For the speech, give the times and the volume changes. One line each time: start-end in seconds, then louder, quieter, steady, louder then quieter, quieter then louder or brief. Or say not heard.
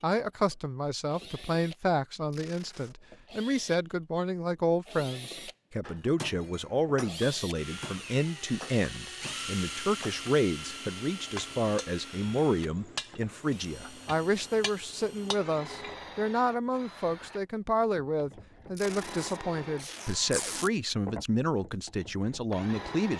0.0-23.1 steady.